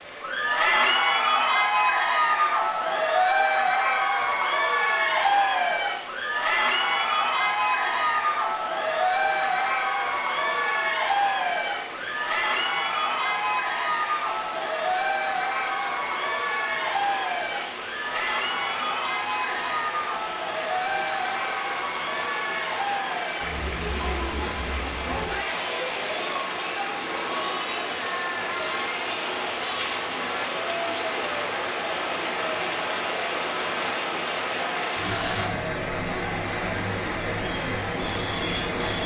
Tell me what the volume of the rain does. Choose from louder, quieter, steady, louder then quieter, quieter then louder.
louder.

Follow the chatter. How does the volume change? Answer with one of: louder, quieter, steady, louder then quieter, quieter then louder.
quieter.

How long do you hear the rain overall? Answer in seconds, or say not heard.
39 s.